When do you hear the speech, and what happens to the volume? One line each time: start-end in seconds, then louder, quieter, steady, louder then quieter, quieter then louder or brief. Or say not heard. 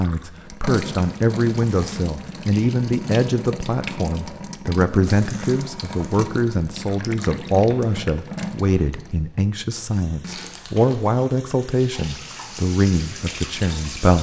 0.0-14.1 steady.